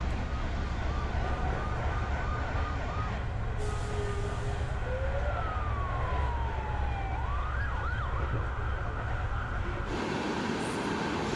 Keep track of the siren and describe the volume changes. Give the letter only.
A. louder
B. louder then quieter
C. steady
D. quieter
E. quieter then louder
C.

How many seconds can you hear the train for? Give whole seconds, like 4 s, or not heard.
11 s.